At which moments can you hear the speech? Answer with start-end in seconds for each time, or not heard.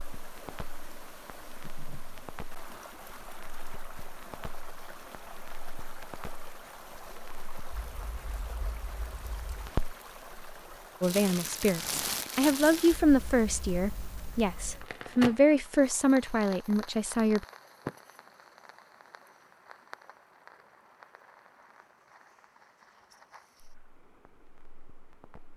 11.0-17.4.